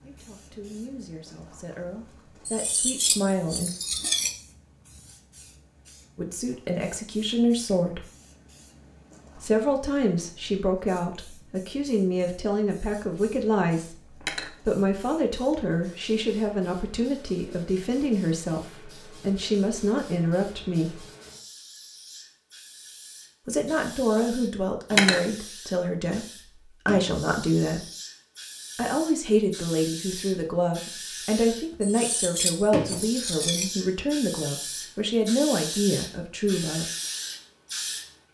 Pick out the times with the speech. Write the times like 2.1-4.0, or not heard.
0.0-3.7, 6.2-8.1, 9.3-21.1, 23.4-27.9, 28.8-36.9.